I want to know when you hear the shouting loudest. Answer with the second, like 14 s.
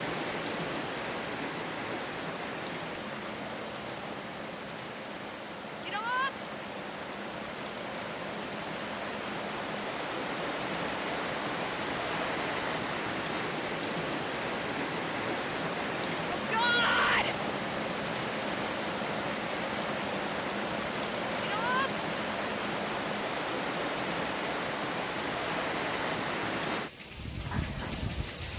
17 s.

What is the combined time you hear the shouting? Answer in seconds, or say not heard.
2 s.